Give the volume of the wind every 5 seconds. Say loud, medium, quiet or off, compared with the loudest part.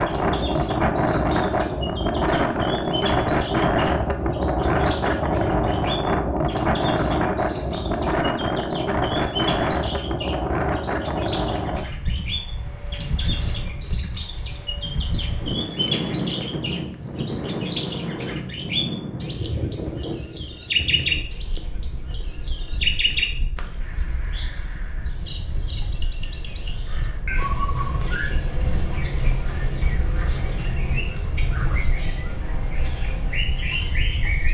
loud, loud, medium, medium, quiet, quiet, quiet.